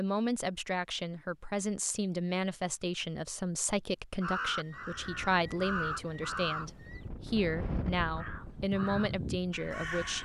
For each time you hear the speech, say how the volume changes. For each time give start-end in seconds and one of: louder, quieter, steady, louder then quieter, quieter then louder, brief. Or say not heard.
0.0-10.2 steady.